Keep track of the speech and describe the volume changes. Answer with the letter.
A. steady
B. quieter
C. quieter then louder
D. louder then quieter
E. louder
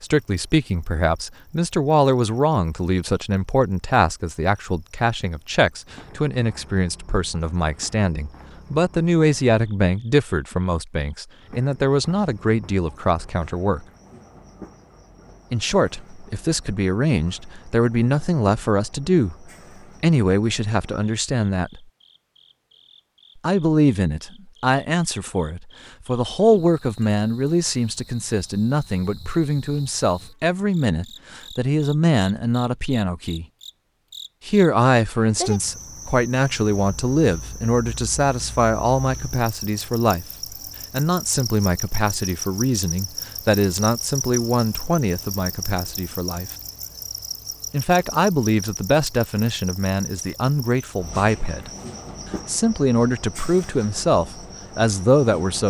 A.